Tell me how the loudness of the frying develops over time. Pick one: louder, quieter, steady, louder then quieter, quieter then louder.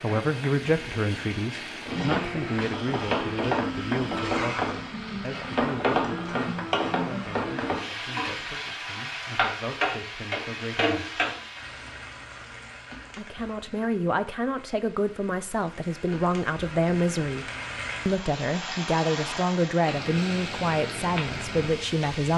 quieter then louder.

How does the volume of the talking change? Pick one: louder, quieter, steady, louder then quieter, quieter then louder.
quieter then louder.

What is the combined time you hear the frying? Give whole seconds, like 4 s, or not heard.
22 s.